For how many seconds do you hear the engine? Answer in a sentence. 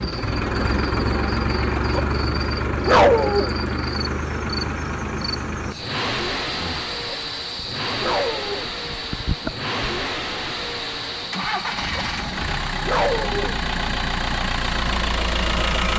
The engine can be heard for 16 seconds in total.